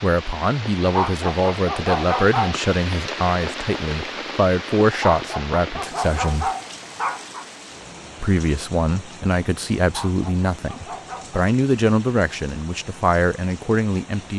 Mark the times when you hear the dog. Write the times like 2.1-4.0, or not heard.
0.8-2.5, 4.9-7.5, 9.8-11.4.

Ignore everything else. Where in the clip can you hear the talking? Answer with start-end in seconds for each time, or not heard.
0.0-6.5, 8.2-14.3.